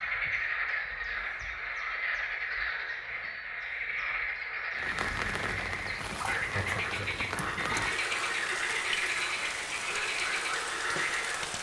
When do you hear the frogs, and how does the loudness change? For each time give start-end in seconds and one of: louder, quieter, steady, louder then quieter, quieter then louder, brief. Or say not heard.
0.0-11.5 steady.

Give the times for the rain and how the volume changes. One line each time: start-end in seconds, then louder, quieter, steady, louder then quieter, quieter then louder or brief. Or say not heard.
4.8-11.5 steady.